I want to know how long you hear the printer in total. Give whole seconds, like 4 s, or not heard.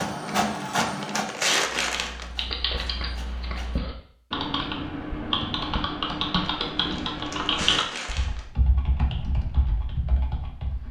4 s.